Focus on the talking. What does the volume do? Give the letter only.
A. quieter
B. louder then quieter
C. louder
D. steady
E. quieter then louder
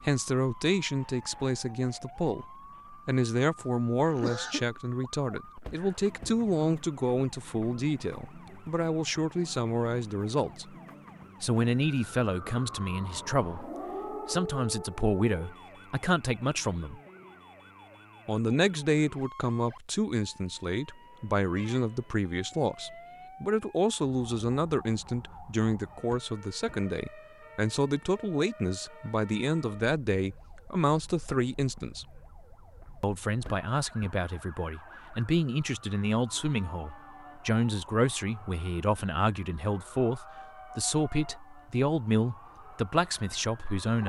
D.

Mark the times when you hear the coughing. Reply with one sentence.
You can hear the coughing from 3.5 to 4.7 s.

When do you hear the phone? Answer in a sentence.
The phone can't be heard in this clip.